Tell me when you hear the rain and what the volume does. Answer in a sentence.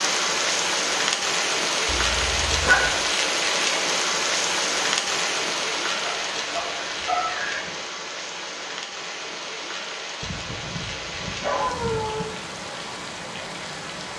You can hear the rain from 0.0 to 14.1 s, getting quieter.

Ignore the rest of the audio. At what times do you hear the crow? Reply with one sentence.
You can't hear the crow here.